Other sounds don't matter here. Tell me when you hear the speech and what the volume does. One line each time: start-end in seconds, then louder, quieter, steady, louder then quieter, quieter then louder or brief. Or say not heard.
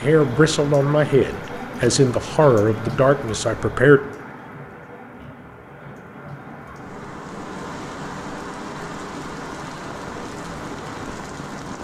0.0-4.0 steady.